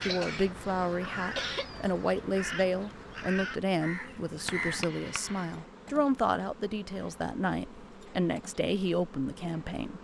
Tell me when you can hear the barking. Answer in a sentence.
You can't hear the barking here.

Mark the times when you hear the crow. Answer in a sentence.
The crow can be heard from 0.0 to 4.8 s.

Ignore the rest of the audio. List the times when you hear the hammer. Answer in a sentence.
You can hear the hammer from 4.5 to 5.8 s.